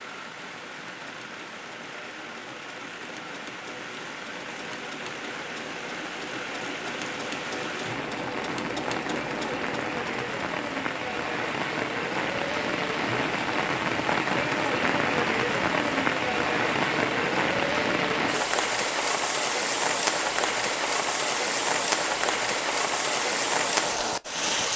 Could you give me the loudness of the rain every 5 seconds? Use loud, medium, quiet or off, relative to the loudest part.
quiet, medium, loud, loud, loud.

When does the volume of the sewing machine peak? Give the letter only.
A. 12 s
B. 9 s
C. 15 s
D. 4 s
B.